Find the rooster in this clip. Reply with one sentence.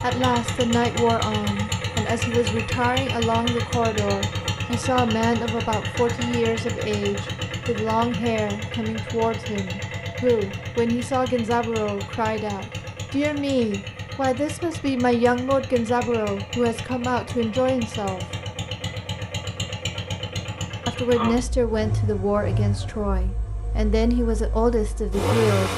You can't hear the rooster here.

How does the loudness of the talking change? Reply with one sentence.
The loudness of the talking stays about the same.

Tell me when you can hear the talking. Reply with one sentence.
You can hear the talking from 0.0 to 18.2 s and from 20.9 to 25.7 s.